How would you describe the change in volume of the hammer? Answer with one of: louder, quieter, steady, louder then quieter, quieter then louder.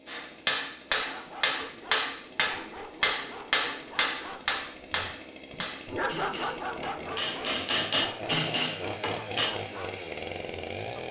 quieter then louder.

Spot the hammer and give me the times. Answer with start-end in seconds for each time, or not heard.
0.1-9.6.